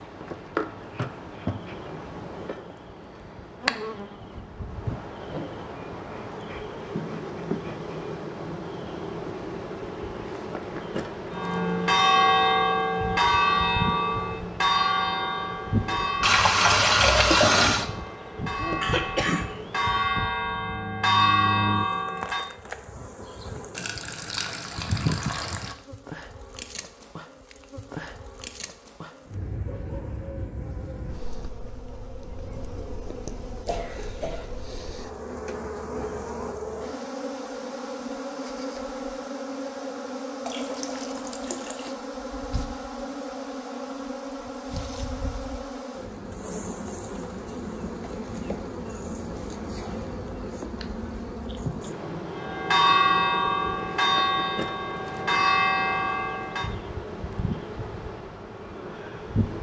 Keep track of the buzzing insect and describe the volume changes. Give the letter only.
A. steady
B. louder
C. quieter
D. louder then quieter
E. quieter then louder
A.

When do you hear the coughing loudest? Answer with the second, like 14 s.
19 s.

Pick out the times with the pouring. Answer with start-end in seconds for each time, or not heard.
16.2-17.9, 23.8-25.8, 40.5-41.9.